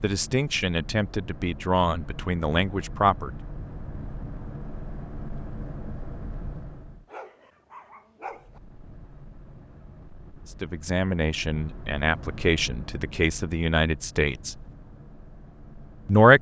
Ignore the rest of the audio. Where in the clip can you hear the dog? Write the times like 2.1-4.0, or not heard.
7.0-8.6.